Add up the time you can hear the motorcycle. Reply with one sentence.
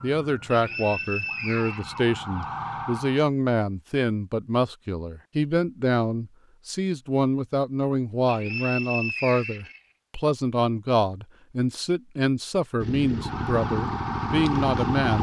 You can hear the motorcycle for 2 seconds altogether.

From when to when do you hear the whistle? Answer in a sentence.
You can hear the whistle from 0.5 to 2.5 s and from 8.2 to 9.8 s.